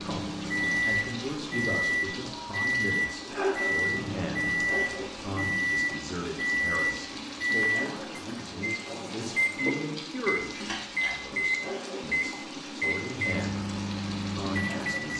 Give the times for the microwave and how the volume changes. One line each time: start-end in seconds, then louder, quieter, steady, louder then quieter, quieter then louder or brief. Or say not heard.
0.0-15.1 steady.